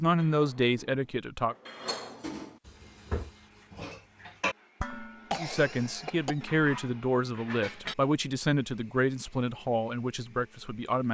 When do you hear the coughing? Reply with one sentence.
You can hear the coughing from 4.9 to 6.6 s.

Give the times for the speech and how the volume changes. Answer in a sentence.
You can hear the speech briefly from 0.0 to 1.6 s; and from 5.3 to 11.0 s, at a steady volume.